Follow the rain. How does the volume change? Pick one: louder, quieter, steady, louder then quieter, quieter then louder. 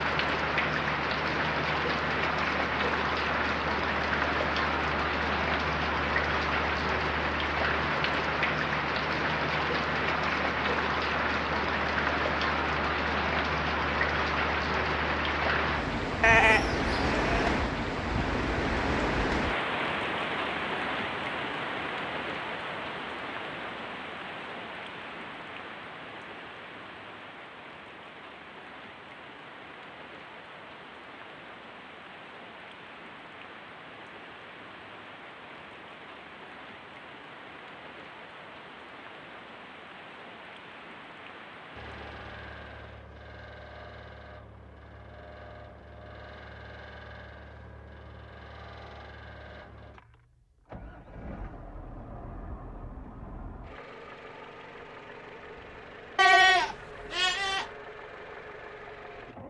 quieter.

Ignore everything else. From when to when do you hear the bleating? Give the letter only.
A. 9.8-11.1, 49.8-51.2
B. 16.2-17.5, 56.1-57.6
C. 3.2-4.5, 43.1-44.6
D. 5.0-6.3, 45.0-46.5
B.